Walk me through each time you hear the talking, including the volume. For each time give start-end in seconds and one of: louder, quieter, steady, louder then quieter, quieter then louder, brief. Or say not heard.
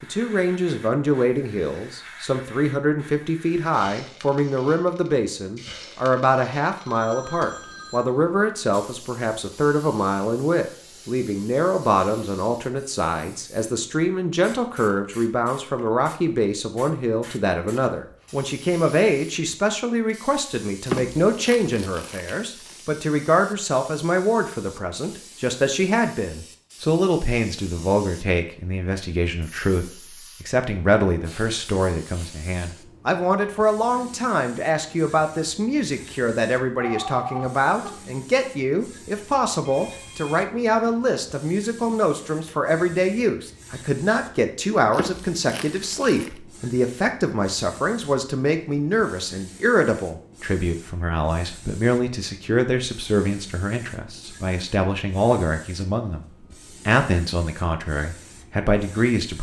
0.0-59.3 steady.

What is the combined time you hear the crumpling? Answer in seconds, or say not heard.
3 s.